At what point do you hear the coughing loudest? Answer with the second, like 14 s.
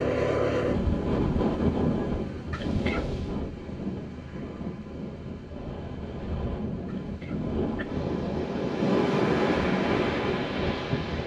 3 s.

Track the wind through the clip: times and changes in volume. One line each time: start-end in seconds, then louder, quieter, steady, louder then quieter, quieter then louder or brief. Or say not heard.
0.0-11.2 quieter then louder.